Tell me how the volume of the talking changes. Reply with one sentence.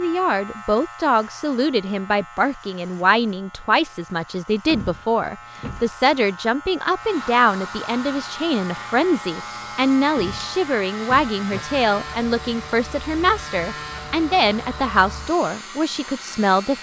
The volume of the talking stays about the same.